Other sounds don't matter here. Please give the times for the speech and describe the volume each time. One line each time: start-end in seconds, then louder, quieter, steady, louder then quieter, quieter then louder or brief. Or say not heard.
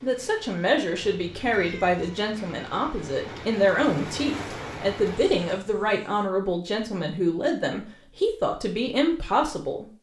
0.0-9.8 steady.